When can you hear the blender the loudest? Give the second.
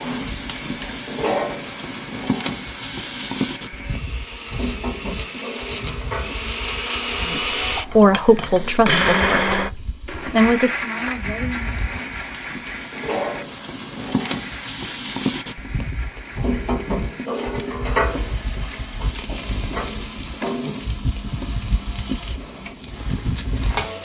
9 s.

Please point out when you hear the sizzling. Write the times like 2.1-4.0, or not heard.
0.0-24.0.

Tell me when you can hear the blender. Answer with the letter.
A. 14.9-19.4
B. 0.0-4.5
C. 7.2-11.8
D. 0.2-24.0
D.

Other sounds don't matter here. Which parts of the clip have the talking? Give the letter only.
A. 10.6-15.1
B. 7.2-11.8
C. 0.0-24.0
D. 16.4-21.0
B.